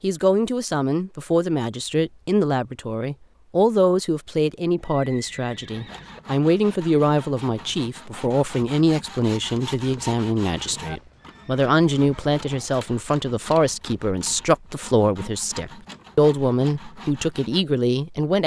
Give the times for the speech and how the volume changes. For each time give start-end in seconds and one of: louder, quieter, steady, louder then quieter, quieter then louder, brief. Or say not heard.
0.0-18.4 steady.